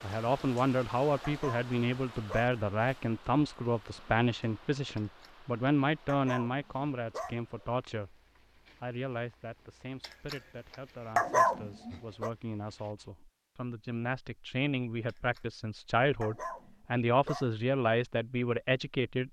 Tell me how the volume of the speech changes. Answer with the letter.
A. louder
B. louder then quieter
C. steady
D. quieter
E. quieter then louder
E.